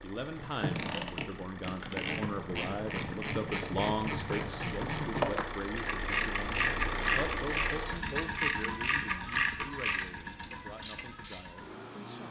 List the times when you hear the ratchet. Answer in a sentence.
You can hear the ratchet from 0.2 to 11.4 s.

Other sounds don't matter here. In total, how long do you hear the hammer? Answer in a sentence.
The hammer can't be heard in this clip.